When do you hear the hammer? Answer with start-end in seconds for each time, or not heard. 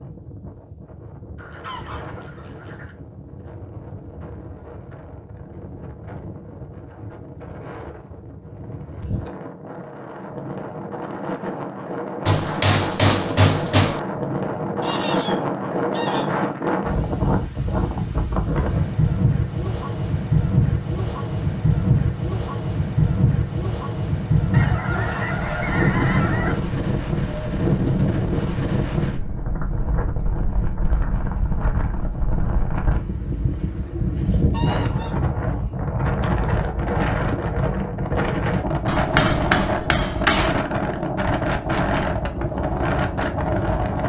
12.2-14.0, 38.9-40.5.